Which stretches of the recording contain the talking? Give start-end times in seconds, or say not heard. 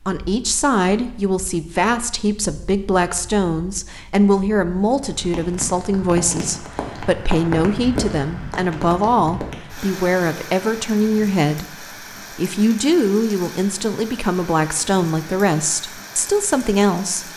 0.0-17.3.